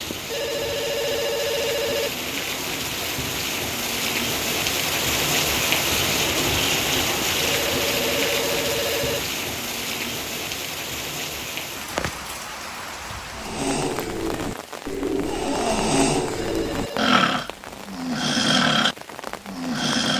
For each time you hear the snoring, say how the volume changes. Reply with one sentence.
The snoring can be heard from 13.3 to 20.1 s, getting louder.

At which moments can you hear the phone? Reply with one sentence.
The phone can be heard from 0.1 to 2.1 s, from 7.2 to 9.2 s and from 16.4 to 17.1 s.